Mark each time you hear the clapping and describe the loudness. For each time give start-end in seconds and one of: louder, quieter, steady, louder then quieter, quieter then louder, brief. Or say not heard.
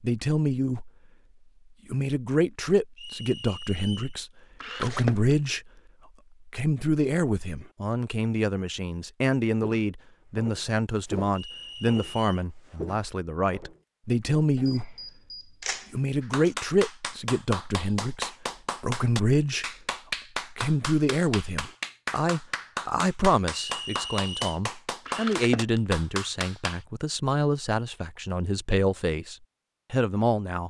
16.2-26.8 steady.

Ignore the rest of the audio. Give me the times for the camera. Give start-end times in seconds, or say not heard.
4.6-5.3, 14.6-16.6, 25.1-25.8.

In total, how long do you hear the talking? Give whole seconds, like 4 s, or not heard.
27 s.